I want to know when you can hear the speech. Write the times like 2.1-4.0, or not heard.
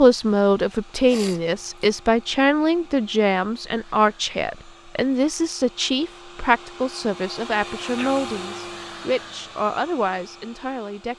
0.0-11.1.